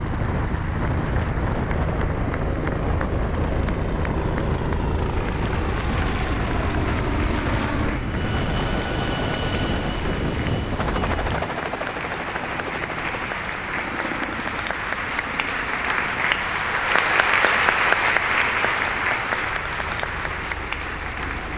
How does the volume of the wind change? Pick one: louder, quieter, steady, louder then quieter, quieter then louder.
quieter.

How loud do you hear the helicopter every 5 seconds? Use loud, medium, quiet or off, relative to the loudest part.
loud, loud, loud, medium, medium.